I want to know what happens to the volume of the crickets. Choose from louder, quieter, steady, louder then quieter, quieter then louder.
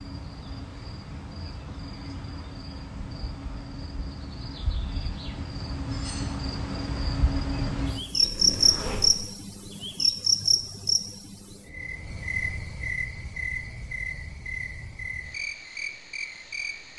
louder then quieter.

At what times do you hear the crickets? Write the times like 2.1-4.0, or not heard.
0.0-16.9.